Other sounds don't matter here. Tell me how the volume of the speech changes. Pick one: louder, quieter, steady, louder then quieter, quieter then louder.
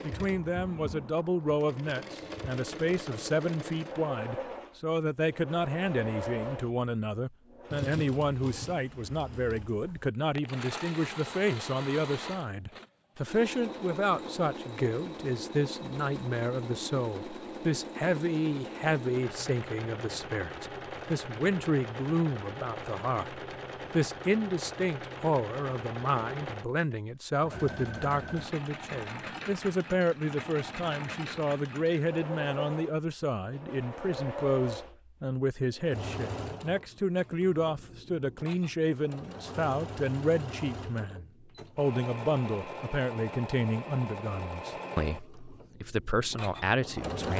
steady.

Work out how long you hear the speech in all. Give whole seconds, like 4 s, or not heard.
47 s.